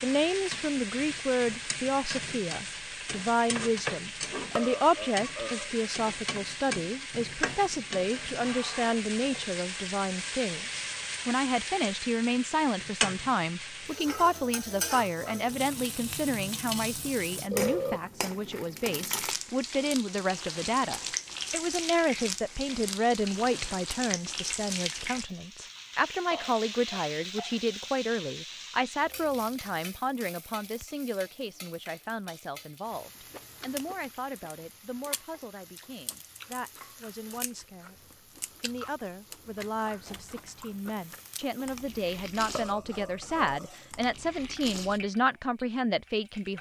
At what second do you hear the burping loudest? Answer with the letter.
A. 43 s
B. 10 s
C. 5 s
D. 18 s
D.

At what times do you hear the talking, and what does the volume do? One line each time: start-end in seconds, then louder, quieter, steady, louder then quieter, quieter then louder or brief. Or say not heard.
0.0-38.0 quieter
38.6-46.5 louder.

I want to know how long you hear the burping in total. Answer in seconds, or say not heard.
4 s.